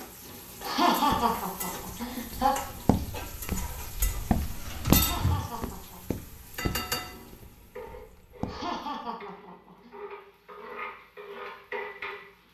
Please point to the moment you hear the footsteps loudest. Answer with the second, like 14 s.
5 s.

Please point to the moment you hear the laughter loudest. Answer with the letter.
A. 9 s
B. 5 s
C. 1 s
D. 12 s
C.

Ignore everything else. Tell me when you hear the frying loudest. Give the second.
5 s.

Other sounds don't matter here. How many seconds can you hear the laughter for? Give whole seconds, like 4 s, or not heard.
5 s.